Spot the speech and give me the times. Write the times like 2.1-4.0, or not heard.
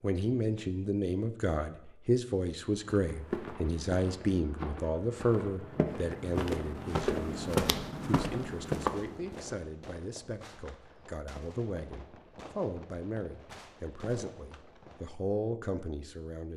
0.0-16.5.